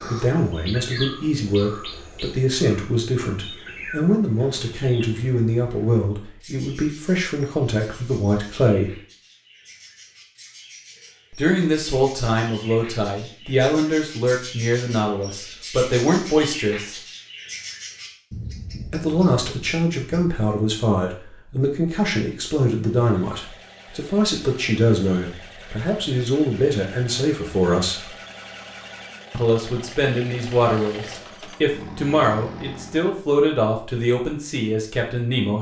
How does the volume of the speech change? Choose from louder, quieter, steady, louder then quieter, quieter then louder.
steady.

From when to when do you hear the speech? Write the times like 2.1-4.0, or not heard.
0.1-8.9, 11.3-16.9, 18.9-28.1, 29.3-35.5.